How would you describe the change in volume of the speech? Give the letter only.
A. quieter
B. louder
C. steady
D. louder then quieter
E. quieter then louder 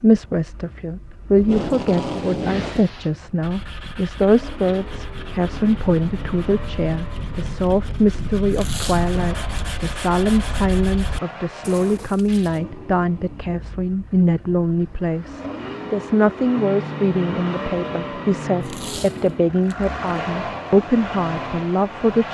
C.